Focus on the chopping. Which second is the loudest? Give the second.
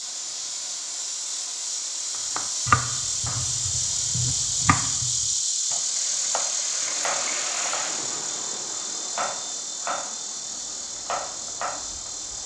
3 s.